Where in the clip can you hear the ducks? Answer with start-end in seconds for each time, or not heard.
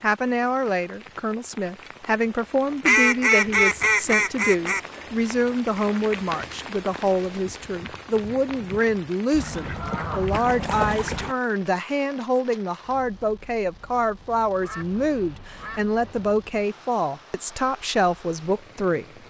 2.9-4.8, 9.3-11.3, 14.6-16.4.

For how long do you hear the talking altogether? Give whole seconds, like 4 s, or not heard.
19 s.